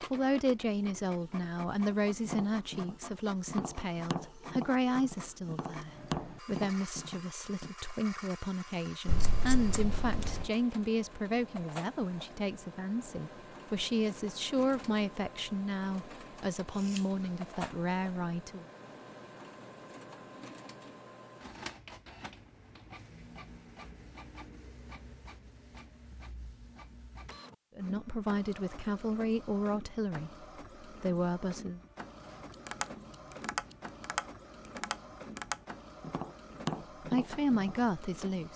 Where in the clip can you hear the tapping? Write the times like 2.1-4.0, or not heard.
2.0-7.7, 32.2-37.8.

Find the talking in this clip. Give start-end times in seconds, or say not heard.
0.0-18.6, 27.8-31.8, 37.0-38.5.